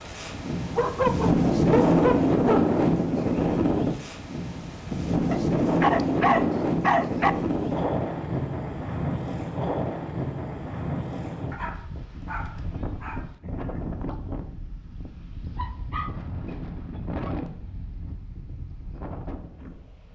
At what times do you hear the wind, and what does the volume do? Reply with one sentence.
The wind can be heard from 0.0 to 20.1 s, getting quieter.